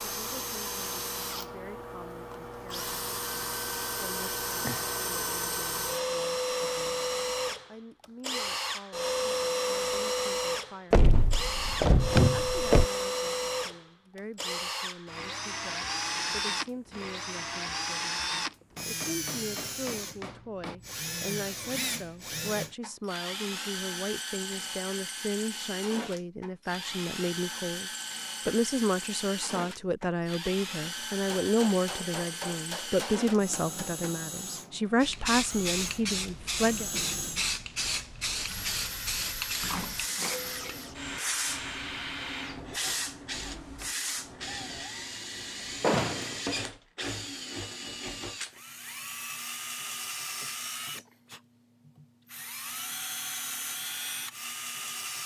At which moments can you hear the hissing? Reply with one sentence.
You can hear the hissing from 35.0 to 44.9 s.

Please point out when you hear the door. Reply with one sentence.
The door can be heard from 10.9 to 12.8 s and from 45.8 to 46.3 s.